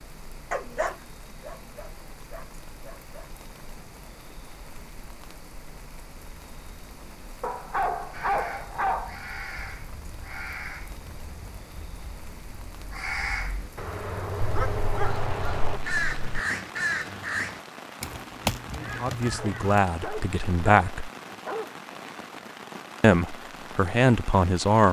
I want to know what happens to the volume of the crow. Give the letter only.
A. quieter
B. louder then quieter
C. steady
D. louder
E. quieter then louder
E.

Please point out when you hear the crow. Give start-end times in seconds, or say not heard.
8.1-19.8.